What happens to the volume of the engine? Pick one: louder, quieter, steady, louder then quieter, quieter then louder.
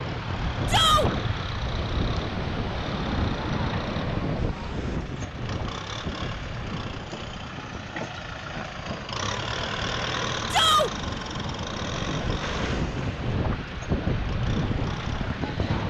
louder then quieter.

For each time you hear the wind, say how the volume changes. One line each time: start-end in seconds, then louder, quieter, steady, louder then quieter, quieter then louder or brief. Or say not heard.
0.0-15.8 quieter then louder.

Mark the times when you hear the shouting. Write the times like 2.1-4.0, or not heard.
0.7-1.1, 10.5-10.9.